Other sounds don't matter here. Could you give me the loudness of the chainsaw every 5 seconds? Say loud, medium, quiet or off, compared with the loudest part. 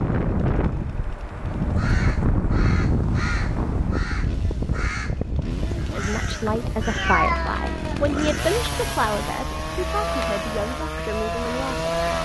quiet, medium, loud.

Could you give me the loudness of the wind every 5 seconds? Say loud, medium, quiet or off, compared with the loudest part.
loud, medium, quiet.